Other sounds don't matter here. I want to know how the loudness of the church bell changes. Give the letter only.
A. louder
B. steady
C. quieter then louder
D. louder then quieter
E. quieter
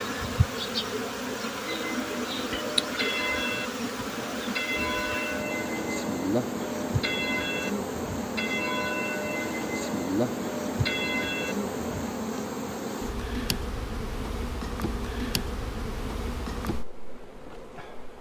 B.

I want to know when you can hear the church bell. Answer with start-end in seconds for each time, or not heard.
1.6-12.2.